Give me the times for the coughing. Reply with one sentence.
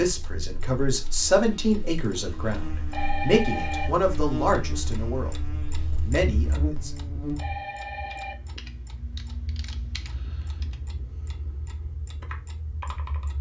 The coughing can't be heard in this clip.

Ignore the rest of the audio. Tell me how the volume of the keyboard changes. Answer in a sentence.
The loudness of the keyboard goes down, then up.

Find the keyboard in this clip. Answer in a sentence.
You can hear the keyboard from 7.9 to 13.3 s.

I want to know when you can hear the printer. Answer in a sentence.
The printer can't be heard in this clip.